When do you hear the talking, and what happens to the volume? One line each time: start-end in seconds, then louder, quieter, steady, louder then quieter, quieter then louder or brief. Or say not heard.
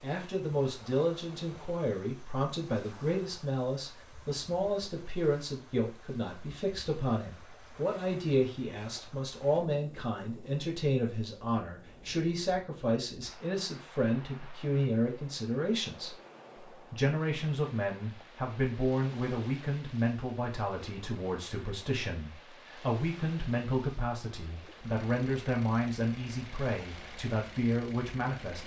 0.0-16.1 steady
16.9-28.6 steady.